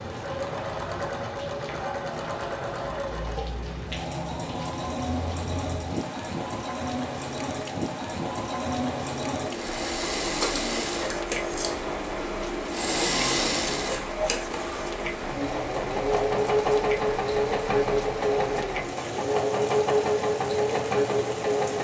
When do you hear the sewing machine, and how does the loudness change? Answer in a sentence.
The sewing machine can be heard from 0.0 to 21.7 s, getting louder.